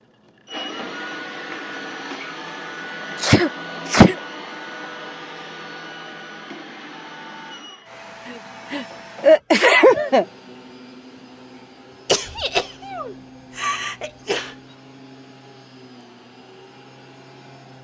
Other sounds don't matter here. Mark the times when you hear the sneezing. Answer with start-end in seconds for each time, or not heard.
3.2-4.2, 8.2-10.2, 12.1-14.6.